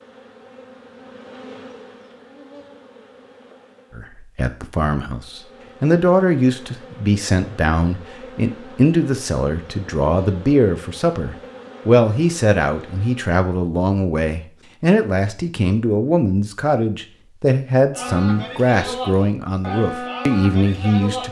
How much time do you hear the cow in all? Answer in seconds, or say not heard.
3 s.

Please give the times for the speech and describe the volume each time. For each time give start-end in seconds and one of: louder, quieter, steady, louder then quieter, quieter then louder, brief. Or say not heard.
4.0-21.2 steady.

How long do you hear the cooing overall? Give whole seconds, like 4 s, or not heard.
not heard.